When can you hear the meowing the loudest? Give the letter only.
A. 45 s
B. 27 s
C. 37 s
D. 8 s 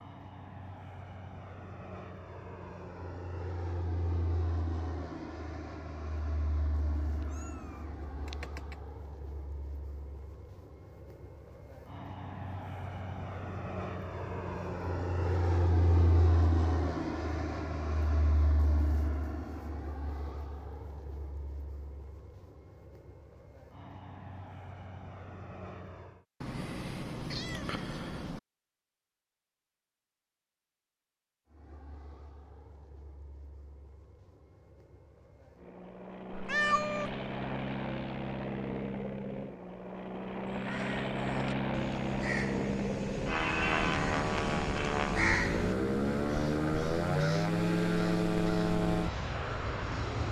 C.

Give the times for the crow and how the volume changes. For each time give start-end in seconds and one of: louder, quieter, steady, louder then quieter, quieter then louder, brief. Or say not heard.
40.5-49.4 louder then quieter.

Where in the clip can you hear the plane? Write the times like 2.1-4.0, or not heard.
0.0-26.2, 31.5-50.2.